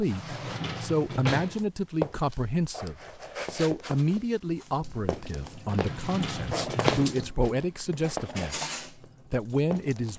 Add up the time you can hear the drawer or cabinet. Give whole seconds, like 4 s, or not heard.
3 s.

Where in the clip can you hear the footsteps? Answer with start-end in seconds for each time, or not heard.
0.0-9.1, 9.7-10.1.